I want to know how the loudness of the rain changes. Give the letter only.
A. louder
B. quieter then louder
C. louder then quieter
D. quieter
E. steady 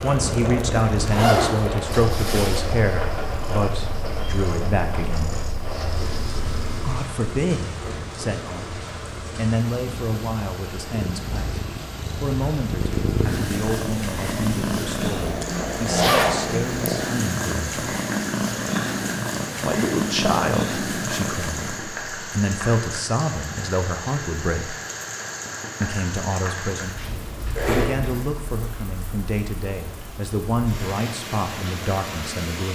E.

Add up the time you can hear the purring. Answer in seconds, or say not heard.
18 s.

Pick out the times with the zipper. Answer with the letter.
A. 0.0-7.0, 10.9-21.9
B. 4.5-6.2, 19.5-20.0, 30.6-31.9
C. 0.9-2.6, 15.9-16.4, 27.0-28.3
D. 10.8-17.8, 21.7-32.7
C.